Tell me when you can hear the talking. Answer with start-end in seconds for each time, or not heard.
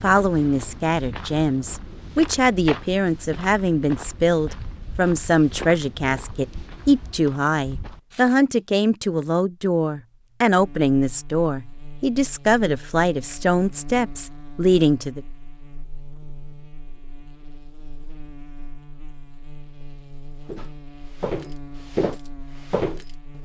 0.0-15.2.